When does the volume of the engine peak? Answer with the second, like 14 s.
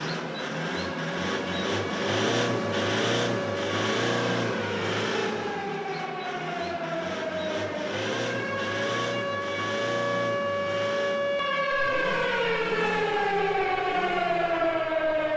3 s.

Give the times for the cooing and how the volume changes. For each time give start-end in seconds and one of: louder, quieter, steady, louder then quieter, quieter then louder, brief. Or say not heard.
not heard.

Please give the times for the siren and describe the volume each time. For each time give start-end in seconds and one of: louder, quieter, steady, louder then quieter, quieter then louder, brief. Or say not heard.
0.1-15.3 louder.